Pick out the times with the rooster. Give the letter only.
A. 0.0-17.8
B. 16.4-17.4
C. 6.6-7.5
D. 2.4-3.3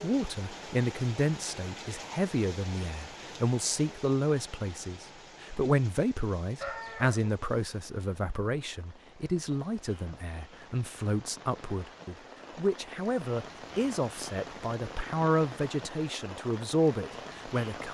C.